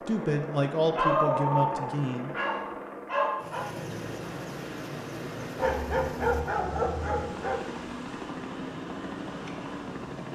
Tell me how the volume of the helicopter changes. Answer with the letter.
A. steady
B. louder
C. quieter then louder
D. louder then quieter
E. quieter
A.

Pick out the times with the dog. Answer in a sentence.
The dog can be heard from 0.9 to 3.6 s and from 5.5 to 7.6 s.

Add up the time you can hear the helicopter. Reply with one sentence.
You can hear the helicopter for 10 seconds altogether.